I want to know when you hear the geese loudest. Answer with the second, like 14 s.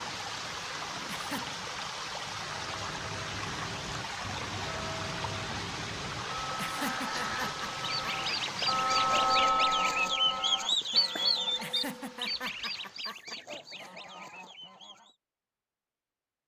11 s.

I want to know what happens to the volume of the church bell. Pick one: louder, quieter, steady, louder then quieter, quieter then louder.
louder then quieter.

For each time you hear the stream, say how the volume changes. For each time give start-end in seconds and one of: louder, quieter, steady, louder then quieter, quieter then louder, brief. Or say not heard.
0.0-13.1 quieter.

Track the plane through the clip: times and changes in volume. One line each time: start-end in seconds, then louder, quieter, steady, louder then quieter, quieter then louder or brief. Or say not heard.
not heard.